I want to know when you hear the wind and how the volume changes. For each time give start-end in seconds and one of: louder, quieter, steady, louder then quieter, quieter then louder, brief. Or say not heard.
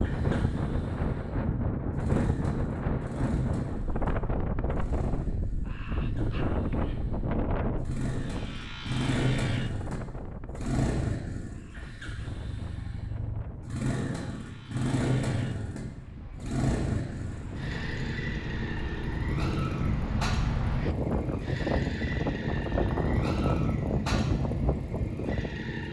0.0-25.7 quieter then louder.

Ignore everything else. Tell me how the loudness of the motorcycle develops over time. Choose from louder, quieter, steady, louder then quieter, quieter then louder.
louder.